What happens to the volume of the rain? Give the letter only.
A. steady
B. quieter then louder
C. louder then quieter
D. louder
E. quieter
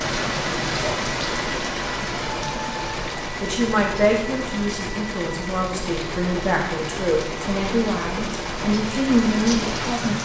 B.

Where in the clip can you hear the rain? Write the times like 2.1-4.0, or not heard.
0.0-10.2.